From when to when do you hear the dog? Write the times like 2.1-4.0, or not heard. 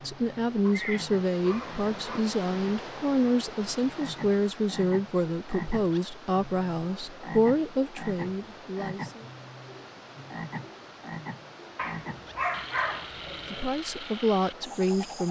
0.7-2.2, 11.8-13.7.